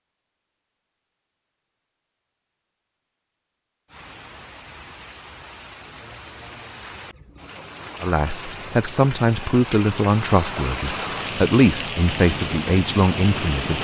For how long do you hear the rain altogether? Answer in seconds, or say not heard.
10 s.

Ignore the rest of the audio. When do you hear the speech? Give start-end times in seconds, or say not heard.
8.0-13.8.